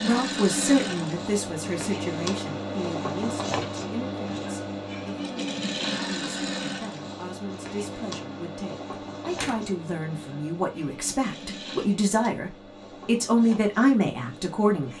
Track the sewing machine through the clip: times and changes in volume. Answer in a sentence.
You can hear the sewing machine from 0.0 to 14.9 s, getting quieter.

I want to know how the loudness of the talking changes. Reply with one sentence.
The loudness of the talking goes down, then up.